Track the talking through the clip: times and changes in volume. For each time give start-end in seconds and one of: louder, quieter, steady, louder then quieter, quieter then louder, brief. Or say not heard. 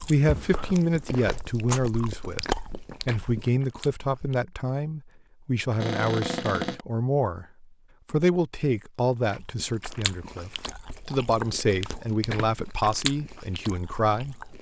0.1-14.5 steady.